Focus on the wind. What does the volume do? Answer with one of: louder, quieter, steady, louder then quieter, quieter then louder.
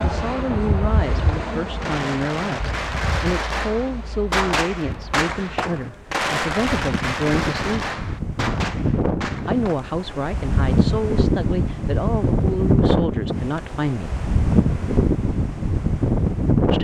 quieter then louder.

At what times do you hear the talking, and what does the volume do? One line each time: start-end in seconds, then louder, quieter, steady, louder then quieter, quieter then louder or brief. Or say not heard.
0.0-7.9 steady
9.4-14.2 steady.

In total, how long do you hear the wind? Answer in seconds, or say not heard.
17 s.